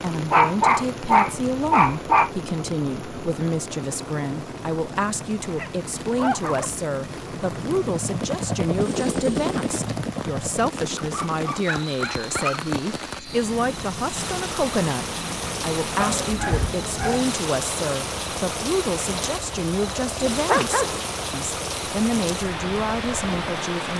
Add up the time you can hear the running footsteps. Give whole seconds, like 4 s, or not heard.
not heard.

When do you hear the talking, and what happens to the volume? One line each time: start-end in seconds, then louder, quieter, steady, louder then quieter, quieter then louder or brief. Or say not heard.
0.0-23.9 steady.